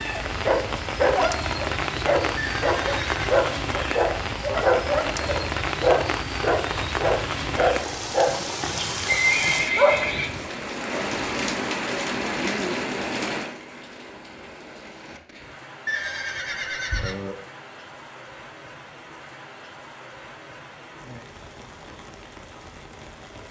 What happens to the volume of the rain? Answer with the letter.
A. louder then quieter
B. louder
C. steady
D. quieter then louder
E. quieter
E.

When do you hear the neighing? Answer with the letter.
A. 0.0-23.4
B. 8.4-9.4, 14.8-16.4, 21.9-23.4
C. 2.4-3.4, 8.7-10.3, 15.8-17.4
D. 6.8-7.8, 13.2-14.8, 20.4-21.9
C.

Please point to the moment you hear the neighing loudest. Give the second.
9 s.